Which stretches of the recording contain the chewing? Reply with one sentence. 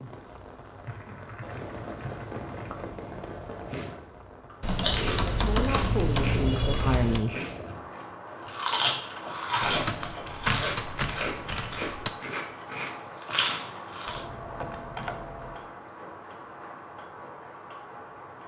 You can hear the chewing from 3.7 to 14.2 s.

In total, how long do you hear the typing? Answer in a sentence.
The typing can be heard for 9 seconds in total.